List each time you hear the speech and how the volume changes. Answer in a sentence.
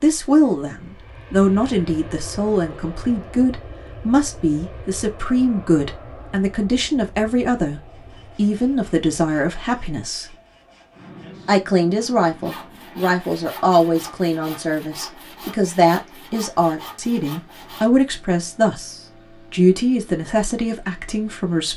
The speech can be heard from 0.0 to 10.3 s, at a steady volume; and from 11.4 to 21.7 s, at a steady volume.